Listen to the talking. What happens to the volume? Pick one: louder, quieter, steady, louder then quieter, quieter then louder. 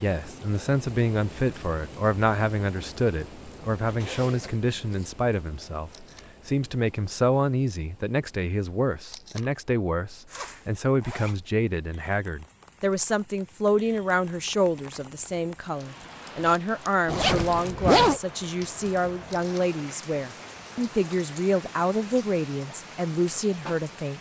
steady.